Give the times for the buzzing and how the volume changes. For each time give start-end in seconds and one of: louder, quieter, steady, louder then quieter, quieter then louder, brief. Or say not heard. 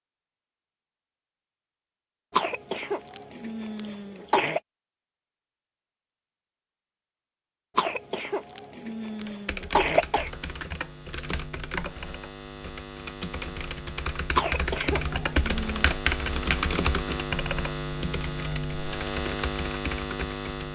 10.1-20.6 louder.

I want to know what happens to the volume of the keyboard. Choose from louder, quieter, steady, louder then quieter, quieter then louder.
louder then quieter.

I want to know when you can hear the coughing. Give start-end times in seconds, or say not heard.
2.3-4.6, 7.8-10.3, 14.3-15.8.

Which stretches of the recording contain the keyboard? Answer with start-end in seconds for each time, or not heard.
9.2-20.4.